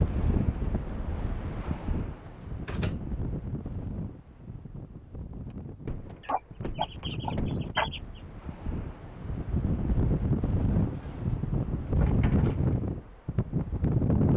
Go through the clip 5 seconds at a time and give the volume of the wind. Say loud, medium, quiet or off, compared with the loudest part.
medium, medium, loud.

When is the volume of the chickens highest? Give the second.
8 s.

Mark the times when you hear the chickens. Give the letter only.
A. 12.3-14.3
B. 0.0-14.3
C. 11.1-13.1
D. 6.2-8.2
D.